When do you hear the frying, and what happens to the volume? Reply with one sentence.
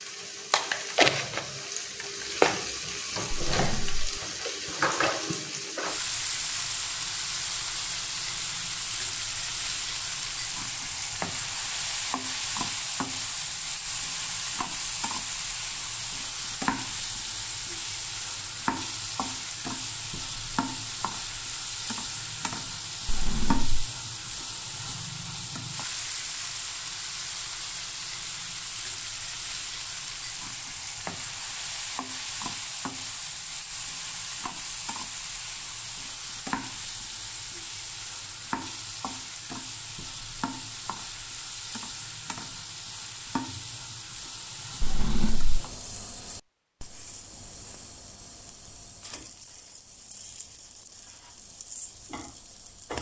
You can hear the frying from 0.0 to 52.9 s, getting quieter.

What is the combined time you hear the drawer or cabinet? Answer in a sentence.
You can hear the drawer or cabinet for 2 seconds altogether.